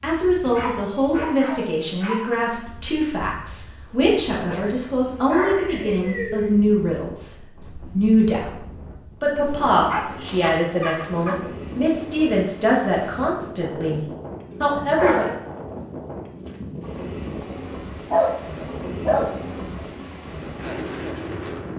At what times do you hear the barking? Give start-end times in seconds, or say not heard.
0.5-2.4, 4.5-6.5, 9.9-11.4, 14.5-15.3, 18.1-19.9.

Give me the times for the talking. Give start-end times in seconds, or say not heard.
0.0-8.5, 9.2-14.0, 14.6-15.3.